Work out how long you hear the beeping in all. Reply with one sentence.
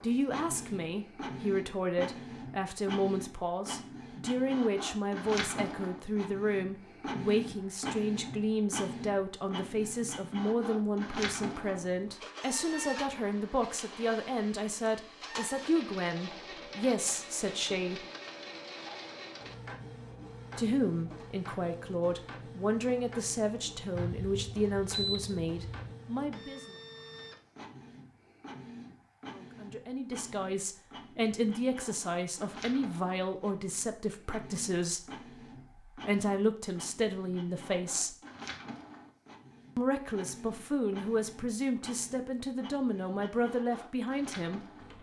The beeping can be heard for 2 seconds in total.